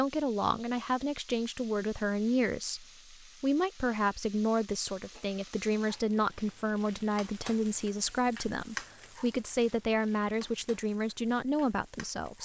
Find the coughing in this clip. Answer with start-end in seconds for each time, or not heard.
not heard.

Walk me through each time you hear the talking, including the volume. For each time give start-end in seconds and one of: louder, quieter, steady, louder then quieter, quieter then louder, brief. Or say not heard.
0.0-12.3 steady.